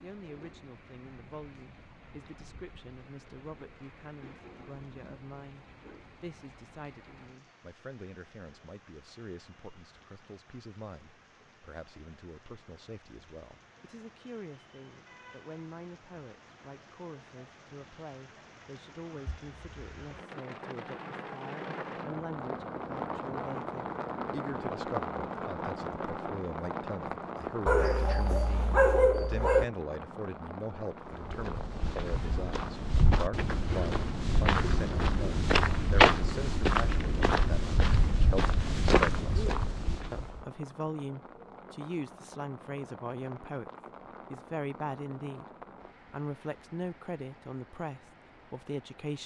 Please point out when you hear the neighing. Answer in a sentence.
You can't hear the neighing here.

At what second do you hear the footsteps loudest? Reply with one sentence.
The loudest moment of the footsteps is at 36 seconds.